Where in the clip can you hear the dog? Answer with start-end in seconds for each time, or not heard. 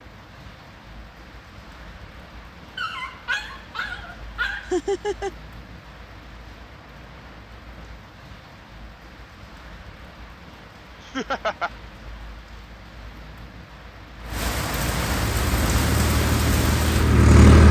2.8-4.8.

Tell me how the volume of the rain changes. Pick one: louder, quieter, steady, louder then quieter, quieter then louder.
louder.